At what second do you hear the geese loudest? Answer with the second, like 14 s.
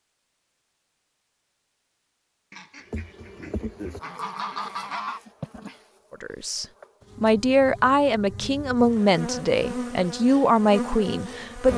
5 s.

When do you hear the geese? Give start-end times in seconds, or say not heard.
2.5-5.2.